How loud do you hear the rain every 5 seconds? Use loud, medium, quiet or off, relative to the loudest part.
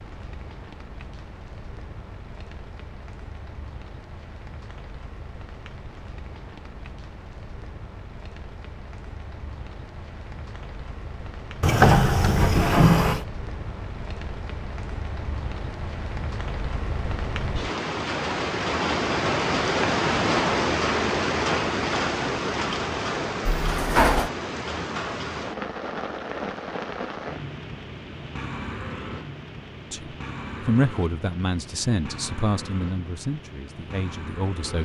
quiet, quiet, quiet, loud, loud, medium, quiet.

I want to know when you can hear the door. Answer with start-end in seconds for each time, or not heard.
11.6-13.2, 23.4-24.3.